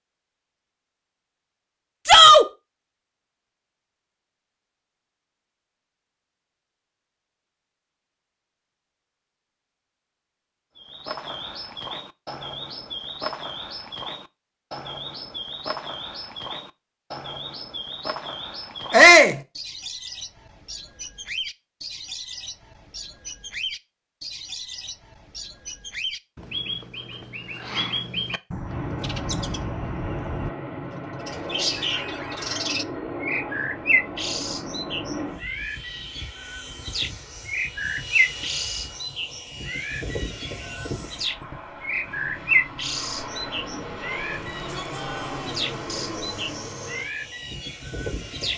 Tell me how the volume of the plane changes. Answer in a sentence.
The loudness of the plane stays about the same.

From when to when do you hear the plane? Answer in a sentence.
You can hear the plane from 28.6 to 48.5 s.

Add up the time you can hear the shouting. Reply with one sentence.
The shouting can be heard for 2 seconds in total.